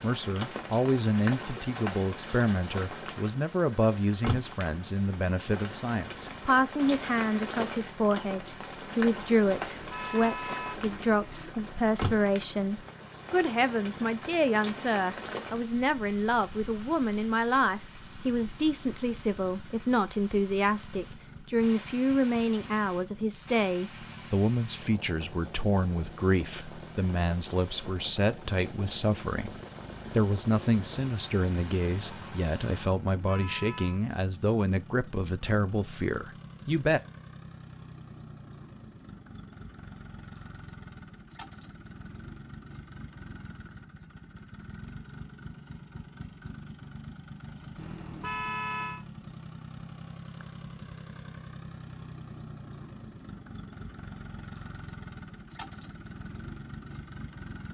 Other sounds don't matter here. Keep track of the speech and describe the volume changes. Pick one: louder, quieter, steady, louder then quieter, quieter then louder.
steady.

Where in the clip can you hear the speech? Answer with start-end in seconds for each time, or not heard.
0.0-37.0.